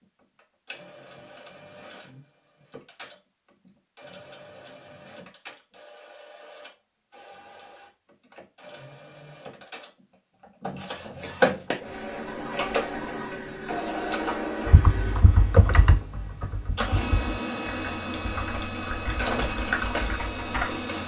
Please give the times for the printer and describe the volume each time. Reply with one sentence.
You can hear the printer from 0.0 to 21.0 s, getting louder.